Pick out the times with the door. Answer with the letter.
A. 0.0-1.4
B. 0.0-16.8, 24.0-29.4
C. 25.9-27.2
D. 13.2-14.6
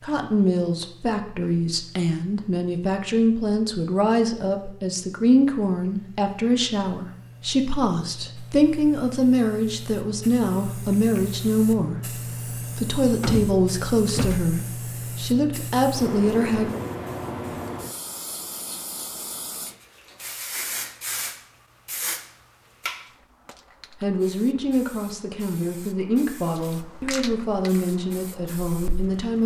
D.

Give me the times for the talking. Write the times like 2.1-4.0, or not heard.
0.0-16.8, 24.0-29.4.